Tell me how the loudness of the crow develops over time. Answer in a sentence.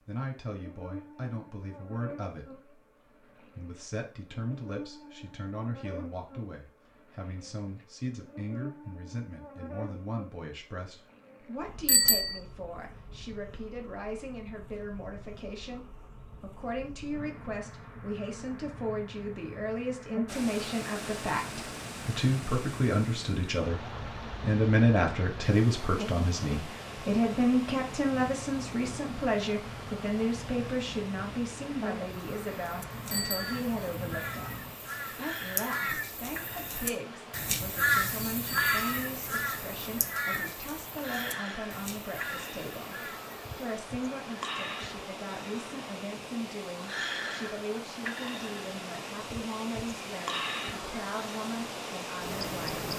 The loudness of the crow goes up, then down.